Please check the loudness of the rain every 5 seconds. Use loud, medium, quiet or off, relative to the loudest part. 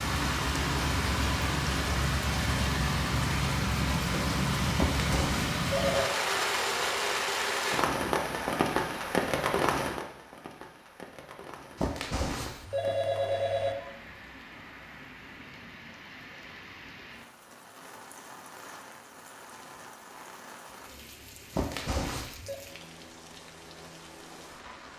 loud, loud, quiet, quiet, quiet.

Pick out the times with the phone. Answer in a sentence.
The phone can be heard from 4.8 to 6.1 s, from 11.8 to 13.8 s and from 21.5 to 22.6 s.